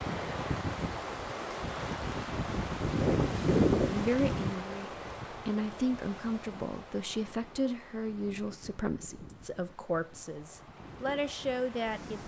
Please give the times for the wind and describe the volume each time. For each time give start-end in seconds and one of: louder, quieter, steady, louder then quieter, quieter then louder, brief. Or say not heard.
0.0-12.2 louder then quieter.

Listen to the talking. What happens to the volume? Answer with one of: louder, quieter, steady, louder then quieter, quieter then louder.
steady.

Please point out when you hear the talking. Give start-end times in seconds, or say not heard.
3.9-12.2.